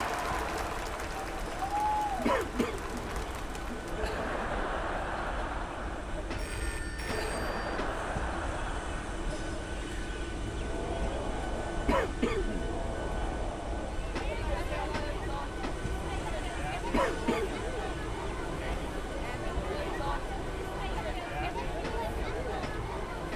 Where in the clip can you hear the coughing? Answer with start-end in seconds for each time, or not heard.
2.2-2.8, 11.8-12.7, 16.9-17.6.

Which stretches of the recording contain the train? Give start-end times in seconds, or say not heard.
0.0-23.3.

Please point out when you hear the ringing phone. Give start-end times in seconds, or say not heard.
6.3-7.6.